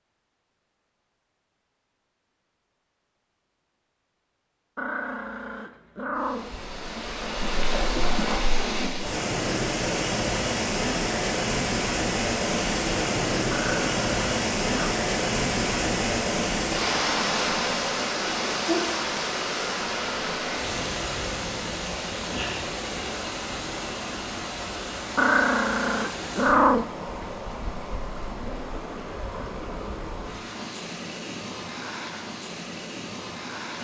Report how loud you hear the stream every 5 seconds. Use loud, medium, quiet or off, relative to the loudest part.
off, loud, loud, loud, medium, medium, medium.